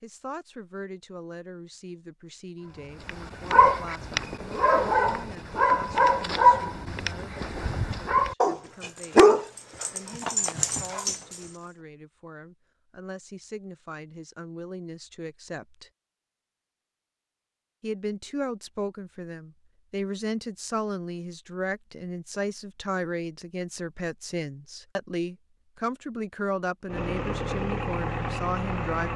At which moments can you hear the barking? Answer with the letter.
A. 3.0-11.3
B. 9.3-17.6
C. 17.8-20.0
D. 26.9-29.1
A.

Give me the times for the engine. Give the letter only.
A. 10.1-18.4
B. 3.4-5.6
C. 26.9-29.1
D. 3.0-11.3
C.